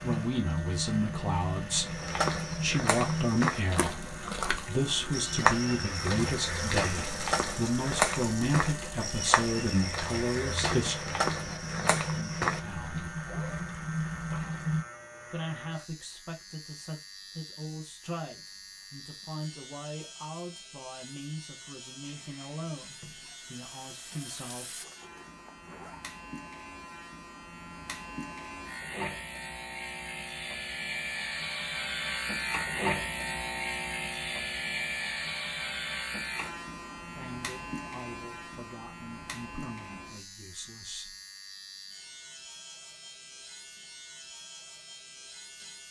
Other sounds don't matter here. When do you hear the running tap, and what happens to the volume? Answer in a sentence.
You can hear the running tap from 0.0 to 14.8 s, getting quieter then louder; and briefly from 22.0 to 24.9 s.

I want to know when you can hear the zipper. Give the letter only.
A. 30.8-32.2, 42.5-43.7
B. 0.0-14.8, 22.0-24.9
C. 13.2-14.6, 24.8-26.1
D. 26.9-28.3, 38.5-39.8
C.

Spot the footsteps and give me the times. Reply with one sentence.
You can hear the footsteps from 1.9 to 13.0 s.